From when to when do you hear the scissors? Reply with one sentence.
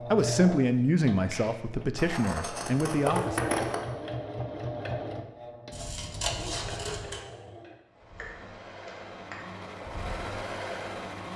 You can hear the scissors from 1.9 to 3.8 s and from 5.7 to 7.2 s.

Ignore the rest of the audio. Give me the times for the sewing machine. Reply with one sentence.
The sewing machine can be heard from 0.0 to 11.3 s.